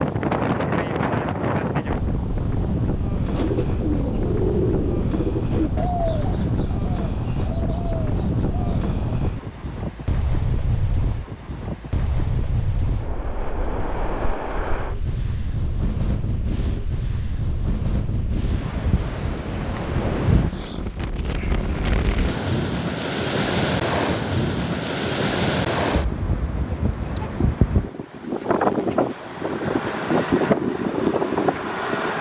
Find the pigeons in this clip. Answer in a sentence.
You can hear the pigeons from 3.2 to 8.9 s.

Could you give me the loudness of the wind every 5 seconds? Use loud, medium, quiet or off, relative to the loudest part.
loud, medium, medium, medium, loud, loud, loud.